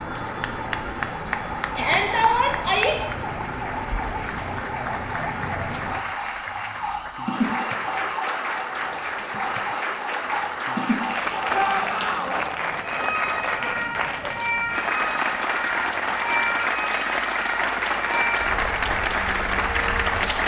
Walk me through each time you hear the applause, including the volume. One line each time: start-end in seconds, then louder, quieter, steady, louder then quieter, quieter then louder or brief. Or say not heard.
0.0-20.4 louder.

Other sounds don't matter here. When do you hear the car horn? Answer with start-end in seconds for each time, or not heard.
not heard.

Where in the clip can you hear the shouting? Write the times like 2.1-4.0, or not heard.
1.8-3.0, 11.5-12.4.